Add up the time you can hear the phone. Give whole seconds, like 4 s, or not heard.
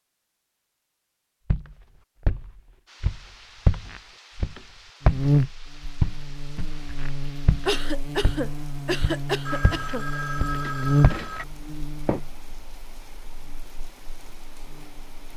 2 s.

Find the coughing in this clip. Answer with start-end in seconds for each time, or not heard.
7.7-10.1.